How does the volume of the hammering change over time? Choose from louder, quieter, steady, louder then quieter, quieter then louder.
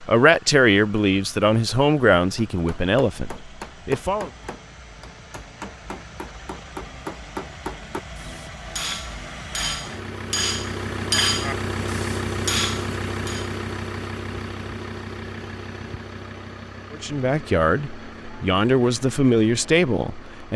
louder.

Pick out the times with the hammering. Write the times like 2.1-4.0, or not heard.
2.4-13.5.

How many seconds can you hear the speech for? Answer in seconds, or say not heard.
8 s.